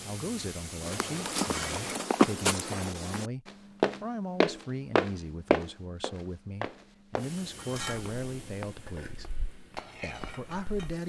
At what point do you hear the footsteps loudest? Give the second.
2 s.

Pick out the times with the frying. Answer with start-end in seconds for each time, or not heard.
0.0-2.0, 7.2-11.0.